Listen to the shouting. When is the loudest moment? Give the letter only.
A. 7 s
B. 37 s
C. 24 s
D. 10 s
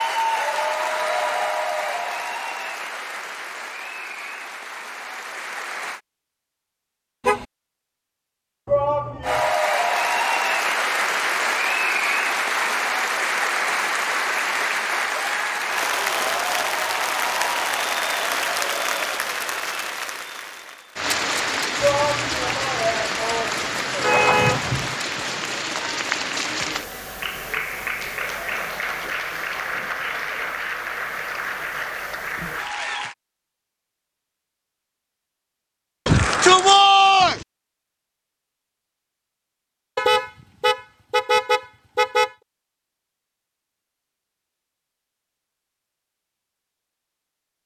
B.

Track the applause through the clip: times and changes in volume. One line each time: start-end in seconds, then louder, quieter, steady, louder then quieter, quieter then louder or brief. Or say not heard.
0.0-6.0 quieter
9.2-33.1 quieter.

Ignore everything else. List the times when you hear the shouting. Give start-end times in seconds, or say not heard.
8.7-9.6, 21.8-24.2, 36.0-37.4.